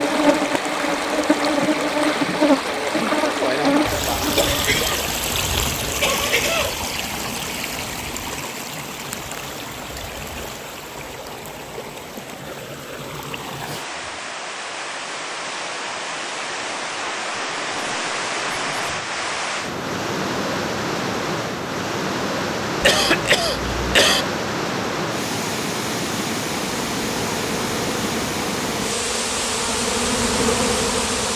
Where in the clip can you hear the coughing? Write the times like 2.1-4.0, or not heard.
4.3-5.1, 5.8-6.8, 22.8-24.2.